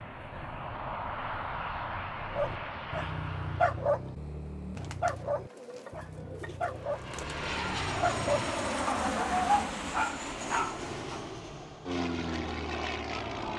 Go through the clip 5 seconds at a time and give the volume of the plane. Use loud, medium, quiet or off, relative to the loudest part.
medium, loud, loud.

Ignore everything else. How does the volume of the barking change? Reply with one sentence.
The loudness of the barking goes down, then up.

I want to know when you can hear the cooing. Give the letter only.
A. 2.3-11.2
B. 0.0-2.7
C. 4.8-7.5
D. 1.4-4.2
C.